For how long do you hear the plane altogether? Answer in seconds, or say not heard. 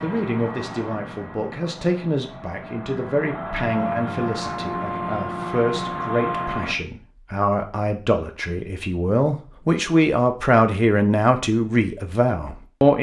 7 s.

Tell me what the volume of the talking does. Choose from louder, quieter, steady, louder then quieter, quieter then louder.
louder.